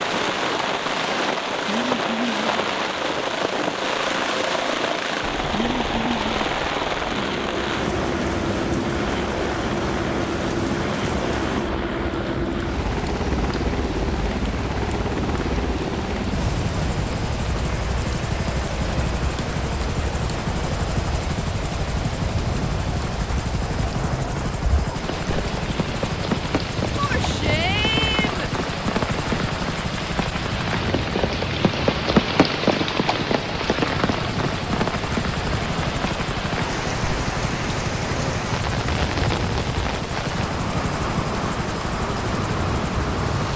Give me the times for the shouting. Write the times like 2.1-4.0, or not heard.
26.9-28.5.